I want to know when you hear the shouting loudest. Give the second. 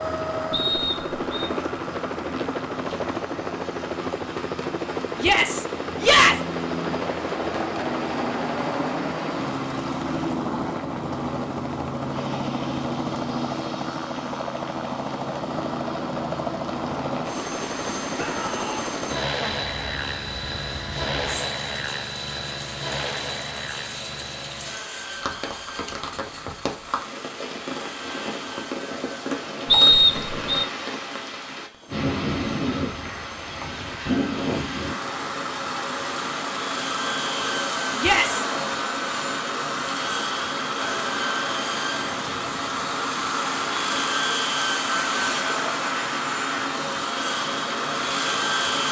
6 s.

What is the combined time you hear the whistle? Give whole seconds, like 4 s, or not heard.
2 s.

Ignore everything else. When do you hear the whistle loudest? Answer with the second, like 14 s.
30 s.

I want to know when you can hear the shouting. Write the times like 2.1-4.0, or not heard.
5.2-6.3, 18.1-18.9, 38.0-38.5.